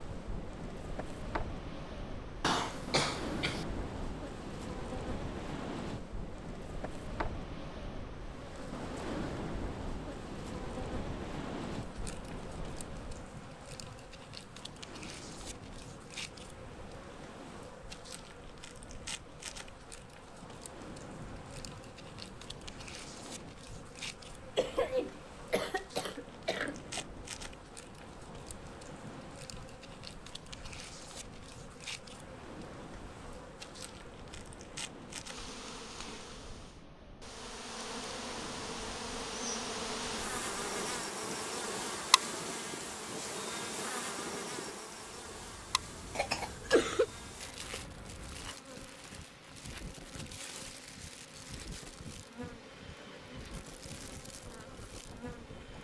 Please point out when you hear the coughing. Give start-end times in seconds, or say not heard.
2.4-3.6, 24.6-27.1, 46.1-47.0.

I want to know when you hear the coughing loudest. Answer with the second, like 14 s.
47 s.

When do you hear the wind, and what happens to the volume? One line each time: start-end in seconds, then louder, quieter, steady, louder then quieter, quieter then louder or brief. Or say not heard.
0.0-55.7 quieter.